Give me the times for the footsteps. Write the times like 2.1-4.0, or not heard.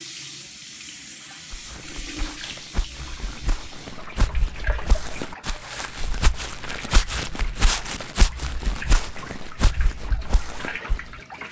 1.5-11.2.